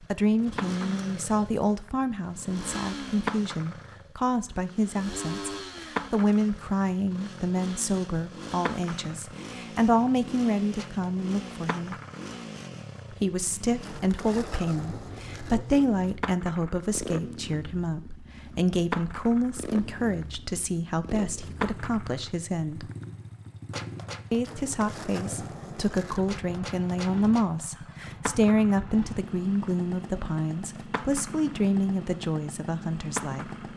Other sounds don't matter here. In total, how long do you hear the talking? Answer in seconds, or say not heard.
31 s.